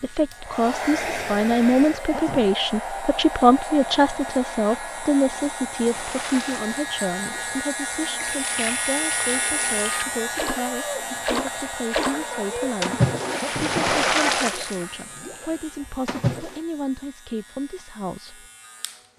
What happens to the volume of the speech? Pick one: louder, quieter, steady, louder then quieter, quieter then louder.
quieter.